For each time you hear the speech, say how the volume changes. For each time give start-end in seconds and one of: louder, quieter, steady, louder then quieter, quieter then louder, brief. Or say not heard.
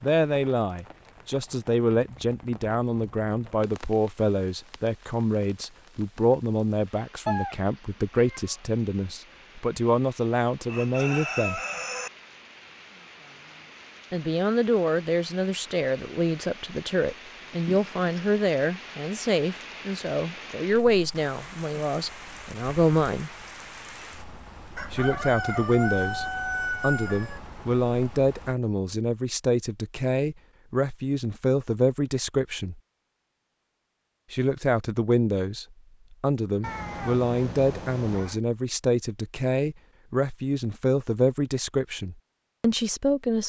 0.0-11.6 steady
14.1-23.3 steady
24.9-32.8 steady
34.3-43.4 steady.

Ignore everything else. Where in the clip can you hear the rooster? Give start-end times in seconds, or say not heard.
10.7-12.1, 24.8-27.4.